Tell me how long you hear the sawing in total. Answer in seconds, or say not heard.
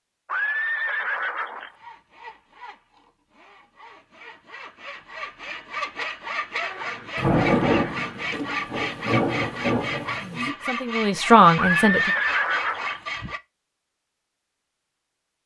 12 s.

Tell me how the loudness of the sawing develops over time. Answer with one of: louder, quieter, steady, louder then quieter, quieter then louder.
louder.